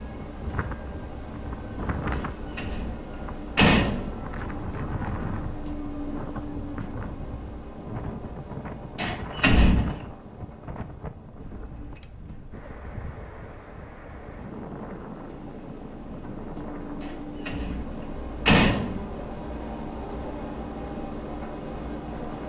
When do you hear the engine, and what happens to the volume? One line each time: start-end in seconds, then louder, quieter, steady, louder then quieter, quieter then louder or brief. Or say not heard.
0.0-22.4 quieter then louder.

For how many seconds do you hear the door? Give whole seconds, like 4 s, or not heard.
4 s.